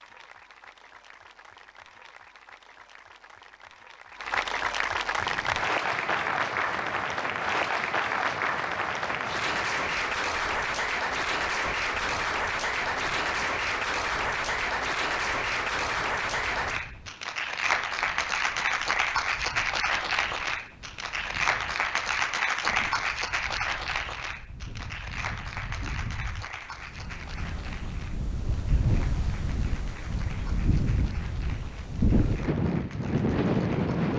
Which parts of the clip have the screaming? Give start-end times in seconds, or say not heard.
not heard.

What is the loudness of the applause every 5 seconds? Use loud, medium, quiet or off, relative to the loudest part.
medium, loud, loud, loud, loud, quiet, quiet.